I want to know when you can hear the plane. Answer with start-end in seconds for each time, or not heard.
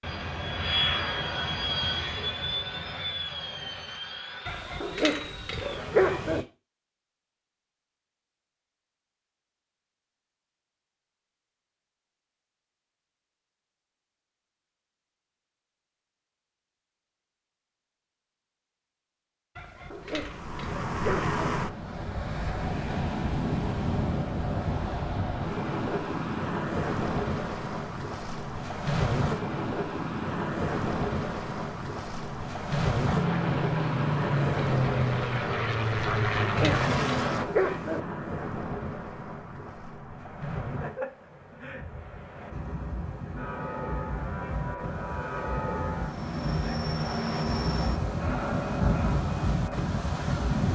0.0-6.5, 33.0-37.5, 43.4-50.7.